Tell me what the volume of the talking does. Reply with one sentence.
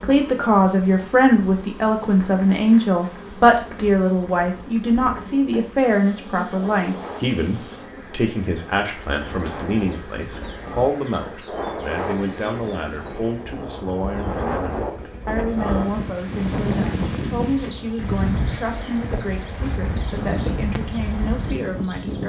The loudness of the talking goes down.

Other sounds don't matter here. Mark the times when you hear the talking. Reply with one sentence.
You can hear the talking from 0.0 to 22.2 s.